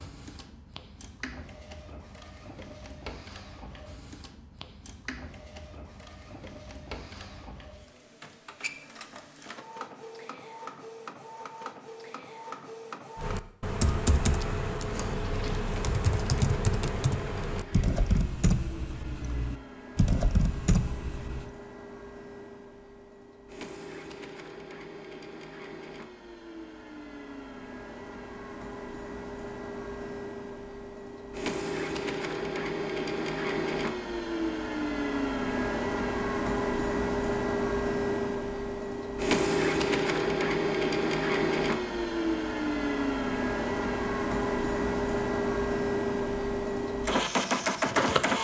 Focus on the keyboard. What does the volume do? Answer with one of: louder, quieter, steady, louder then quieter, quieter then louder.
steady.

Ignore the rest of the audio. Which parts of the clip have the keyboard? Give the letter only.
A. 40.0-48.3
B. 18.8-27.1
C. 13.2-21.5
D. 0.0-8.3
C.